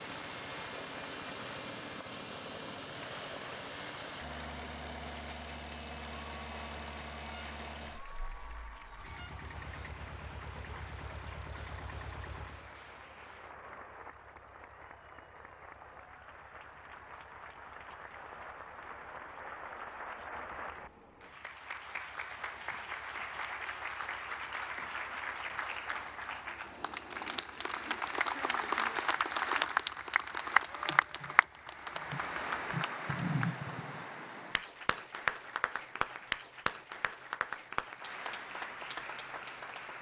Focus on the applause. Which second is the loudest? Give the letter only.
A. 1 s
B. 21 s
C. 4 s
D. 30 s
D.